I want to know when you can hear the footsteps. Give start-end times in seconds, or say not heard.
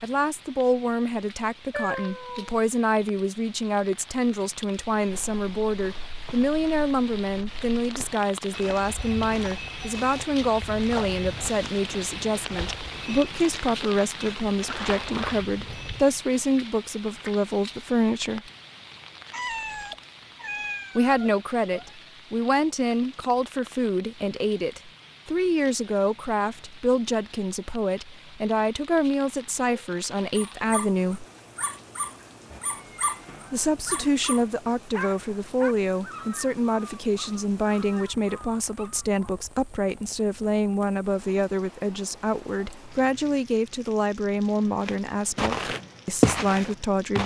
5.0-16.1, 44.8-47.2.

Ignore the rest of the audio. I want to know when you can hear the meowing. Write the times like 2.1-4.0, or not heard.
1.7-2.5, 19.3-21.9, 32.5-34.0.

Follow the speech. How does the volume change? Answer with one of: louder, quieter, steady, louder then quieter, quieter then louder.
steady.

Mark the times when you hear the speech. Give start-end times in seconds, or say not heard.
0.0-18.4, 20.9-31.2, 33.5-47.2.